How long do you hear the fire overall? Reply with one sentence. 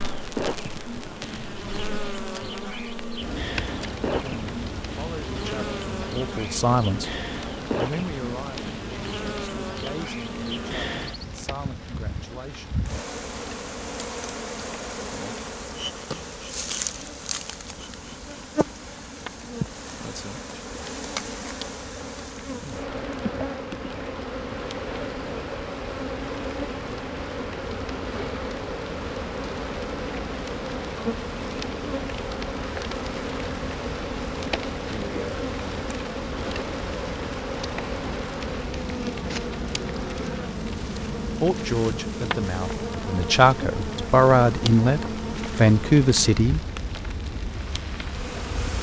The fire can be heard for 49 seconds in total.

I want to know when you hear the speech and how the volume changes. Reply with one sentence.
The speech can be heard from 4.2 to 12.8 s, getting louder then quieter; and from 41.4 to 46.6 s, getting louder.